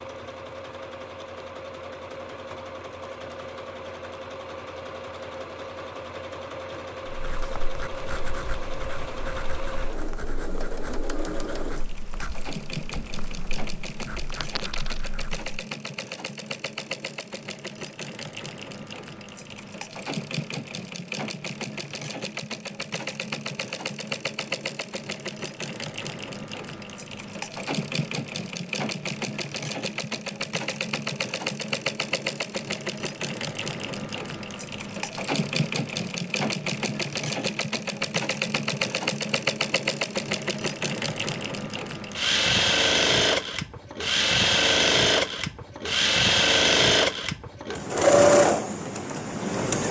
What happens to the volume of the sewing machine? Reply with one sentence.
The loudness of the sewing machine goes up.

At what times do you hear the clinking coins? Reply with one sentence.
The clinking coins can be heard from 14.4 to 15.1 s.